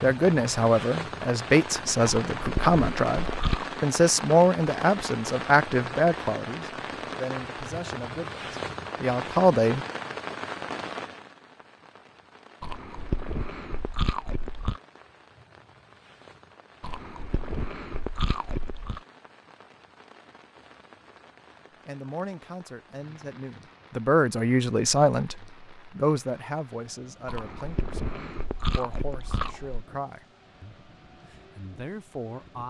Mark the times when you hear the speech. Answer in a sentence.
The speech can be heard from 0.0 to 9.8 s and from 21.9 to 32.6 s.